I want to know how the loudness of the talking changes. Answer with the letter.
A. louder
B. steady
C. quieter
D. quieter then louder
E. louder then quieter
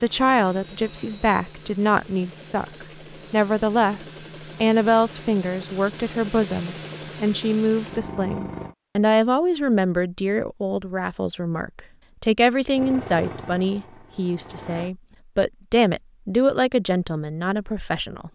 B.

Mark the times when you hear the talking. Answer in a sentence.
The talking can be heard from 0.0 to 18.2 s.